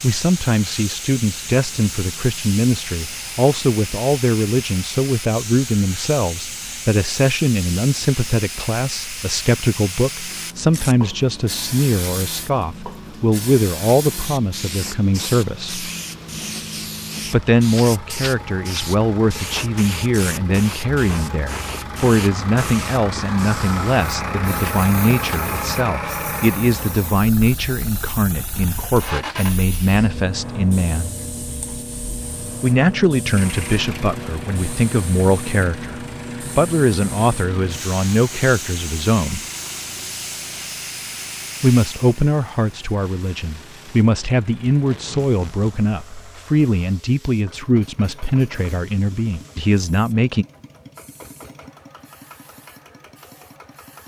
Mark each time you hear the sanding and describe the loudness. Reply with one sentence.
The sanding can't be heard in this clip.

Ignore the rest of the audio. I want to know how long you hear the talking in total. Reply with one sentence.
You can hear the talking for 45 seconds altogether.